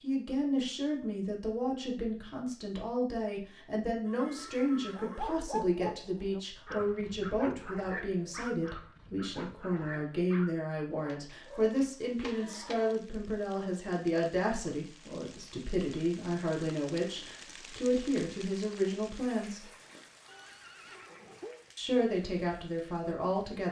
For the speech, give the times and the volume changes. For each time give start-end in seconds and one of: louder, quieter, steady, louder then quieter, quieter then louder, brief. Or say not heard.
0.0-19.6 steady
21.8-23.6 brief.